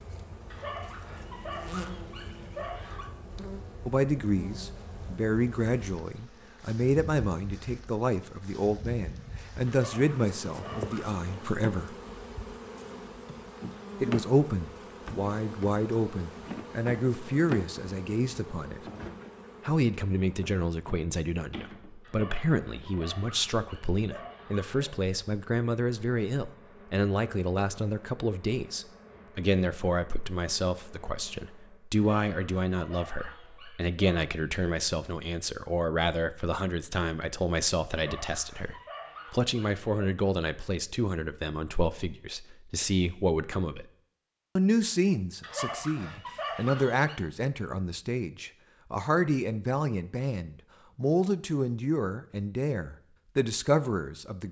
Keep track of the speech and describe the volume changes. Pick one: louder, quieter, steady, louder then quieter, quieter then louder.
steady.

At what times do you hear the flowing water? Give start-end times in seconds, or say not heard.
not heard.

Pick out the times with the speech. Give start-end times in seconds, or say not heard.
3.9-11.9, 14.0-18.8, 19.6-43.9, 44.5-54.4.